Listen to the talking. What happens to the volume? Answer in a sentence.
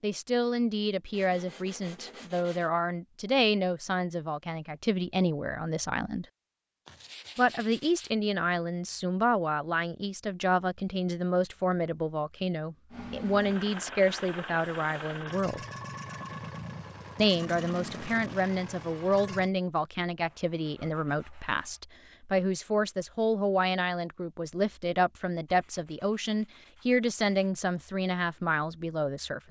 The loudness of the talking stays about the same.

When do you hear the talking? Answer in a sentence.
You can hear the talking from 0.0 to 6.2 s, from 7.3 to 15.6 s and from 17.1 to 29.4 s.